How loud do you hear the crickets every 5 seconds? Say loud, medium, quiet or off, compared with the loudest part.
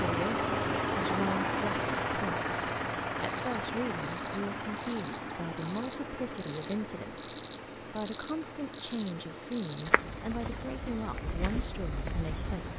medium, loud, loud.